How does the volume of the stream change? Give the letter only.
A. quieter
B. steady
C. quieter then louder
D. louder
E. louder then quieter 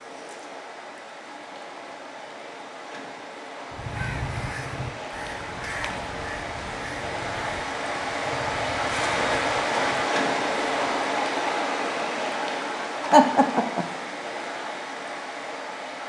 E.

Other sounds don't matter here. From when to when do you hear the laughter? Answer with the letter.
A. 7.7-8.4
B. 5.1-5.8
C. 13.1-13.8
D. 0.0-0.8
C.